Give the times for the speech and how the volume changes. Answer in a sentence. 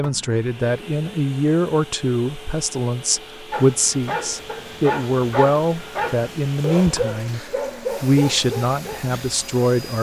You can hear the speech from 0.0 to 9.9 s, at a steady volume.